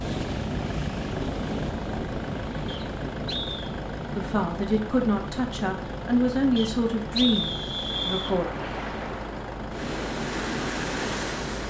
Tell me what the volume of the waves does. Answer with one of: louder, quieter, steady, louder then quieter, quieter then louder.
quieter then louder.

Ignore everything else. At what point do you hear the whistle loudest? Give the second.
7 s.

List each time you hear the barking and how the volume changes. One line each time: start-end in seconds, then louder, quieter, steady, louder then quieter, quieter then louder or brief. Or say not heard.
not heard.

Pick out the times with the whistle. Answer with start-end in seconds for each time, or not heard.
2.6-3.7, 6.5-8.3.